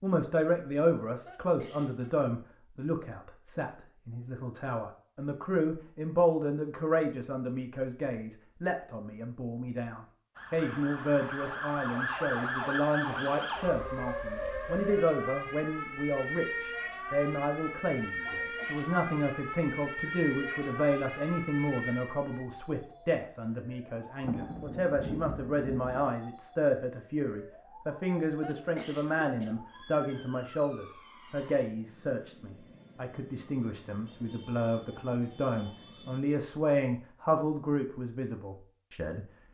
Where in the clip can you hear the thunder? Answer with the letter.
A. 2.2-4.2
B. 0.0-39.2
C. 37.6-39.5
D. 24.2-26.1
D.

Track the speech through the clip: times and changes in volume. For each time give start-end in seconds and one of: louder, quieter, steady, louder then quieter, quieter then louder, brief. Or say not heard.
0.0-39.2 steady.